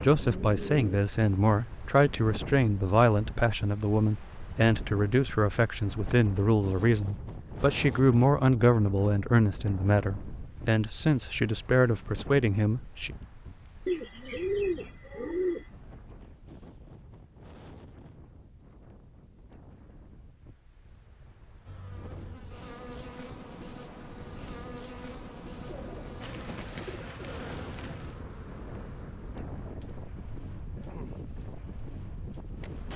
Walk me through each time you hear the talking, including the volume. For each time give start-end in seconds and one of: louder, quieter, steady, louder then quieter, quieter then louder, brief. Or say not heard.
0.0-13.1 steady.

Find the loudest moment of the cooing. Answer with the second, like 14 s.
15 s.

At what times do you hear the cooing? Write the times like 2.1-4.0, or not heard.
0.1-1.1, 13.8-15.7, 25.6-27.4.